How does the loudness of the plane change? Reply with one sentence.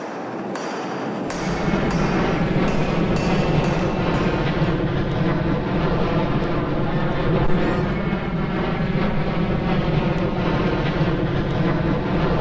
The volume of the plane stays about the same.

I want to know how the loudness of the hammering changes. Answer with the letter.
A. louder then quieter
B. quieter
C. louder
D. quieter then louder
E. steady
E.